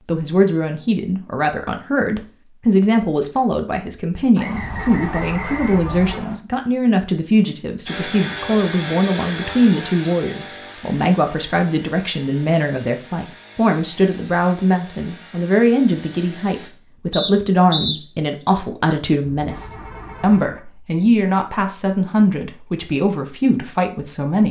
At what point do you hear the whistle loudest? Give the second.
18 s.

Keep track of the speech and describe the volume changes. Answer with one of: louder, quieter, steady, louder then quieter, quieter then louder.
steady.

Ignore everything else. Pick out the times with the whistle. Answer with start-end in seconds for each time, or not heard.
4.3-6.3, 17.1-18.0.